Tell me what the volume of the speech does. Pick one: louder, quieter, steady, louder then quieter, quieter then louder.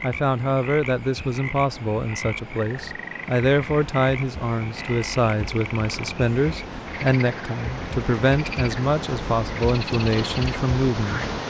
steady.